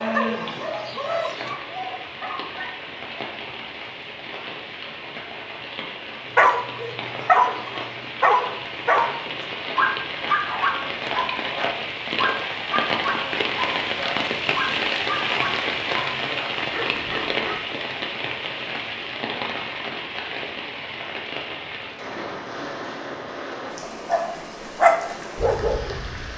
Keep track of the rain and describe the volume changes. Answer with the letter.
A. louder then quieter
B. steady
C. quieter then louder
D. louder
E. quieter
A.